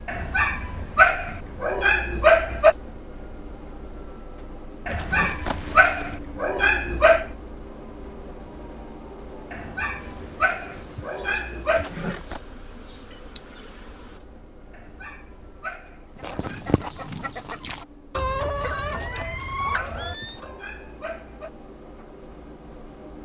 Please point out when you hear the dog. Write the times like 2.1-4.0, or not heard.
0.1-2.8, 4.8-7.3, 9.5-11.9, 14.7-16.6, 19.1-21.5.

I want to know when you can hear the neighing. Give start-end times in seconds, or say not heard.
4.9-6.2, 11.8-12.4, 18.7-20.4.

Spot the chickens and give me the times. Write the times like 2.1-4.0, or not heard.
16.1-20.6.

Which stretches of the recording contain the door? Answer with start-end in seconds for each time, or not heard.
not heard.